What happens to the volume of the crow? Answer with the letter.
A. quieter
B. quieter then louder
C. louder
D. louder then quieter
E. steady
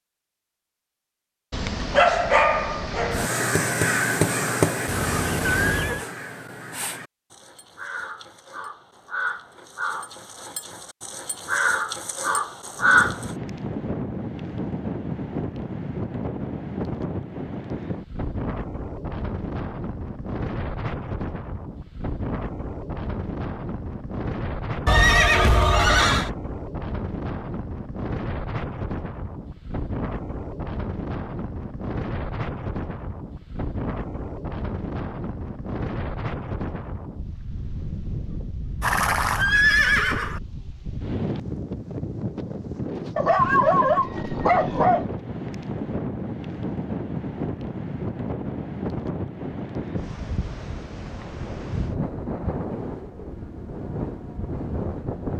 B.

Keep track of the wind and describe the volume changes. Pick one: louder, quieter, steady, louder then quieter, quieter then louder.
steady.